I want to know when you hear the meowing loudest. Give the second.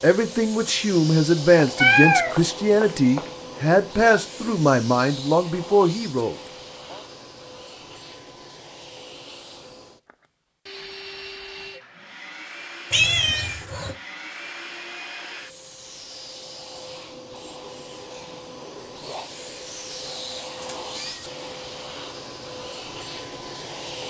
2 s.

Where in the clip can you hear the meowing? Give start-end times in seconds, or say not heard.
1.6-3.2, 12.9-13.9, 20.1-21.2.